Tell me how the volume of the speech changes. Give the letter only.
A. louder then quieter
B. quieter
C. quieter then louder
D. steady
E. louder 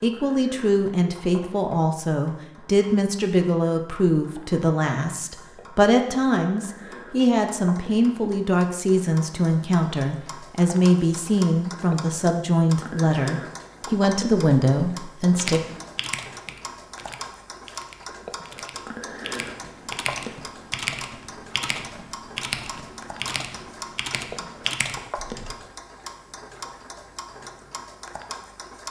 D.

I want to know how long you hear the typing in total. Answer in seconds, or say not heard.
10 s.